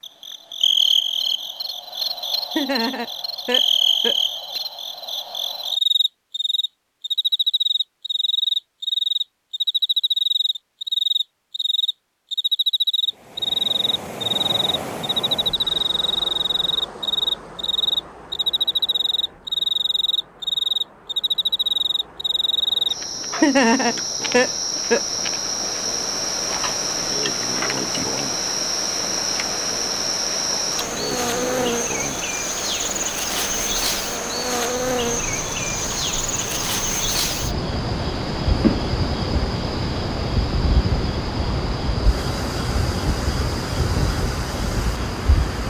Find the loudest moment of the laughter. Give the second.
24 s.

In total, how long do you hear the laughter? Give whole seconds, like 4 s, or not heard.
4 s.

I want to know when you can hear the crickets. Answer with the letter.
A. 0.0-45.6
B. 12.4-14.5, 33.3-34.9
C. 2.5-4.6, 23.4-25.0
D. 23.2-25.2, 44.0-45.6
A.